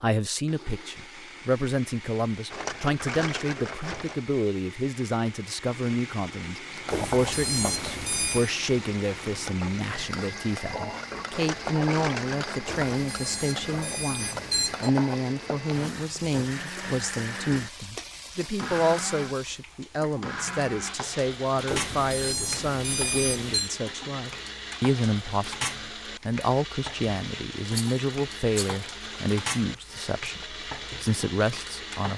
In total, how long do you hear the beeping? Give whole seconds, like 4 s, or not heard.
6 s.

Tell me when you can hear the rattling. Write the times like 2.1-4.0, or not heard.
2.5-4.2, 11.3-13.1, 27.7-28.9.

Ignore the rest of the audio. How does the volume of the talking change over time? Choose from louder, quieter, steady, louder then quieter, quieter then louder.
steady.